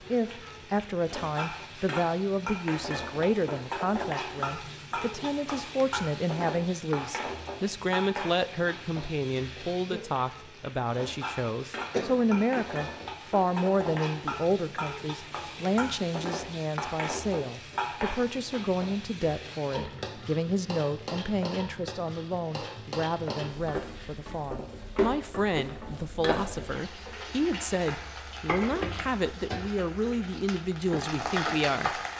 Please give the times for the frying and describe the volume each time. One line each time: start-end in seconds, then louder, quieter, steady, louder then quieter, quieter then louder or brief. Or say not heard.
0.0-32.1 steady.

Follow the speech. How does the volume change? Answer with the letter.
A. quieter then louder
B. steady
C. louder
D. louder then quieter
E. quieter
B.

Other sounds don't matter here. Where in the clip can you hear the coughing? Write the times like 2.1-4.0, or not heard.
11.9-12.8.